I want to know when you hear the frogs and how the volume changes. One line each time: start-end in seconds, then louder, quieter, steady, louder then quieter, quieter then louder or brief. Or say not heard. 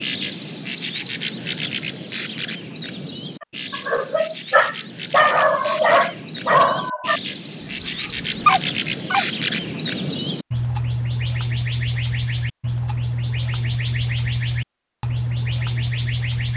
not heard.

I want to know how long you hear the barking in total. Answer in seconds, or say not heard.
6 s.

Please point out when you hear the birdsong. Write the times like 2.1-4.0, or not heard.
0.0-16.5.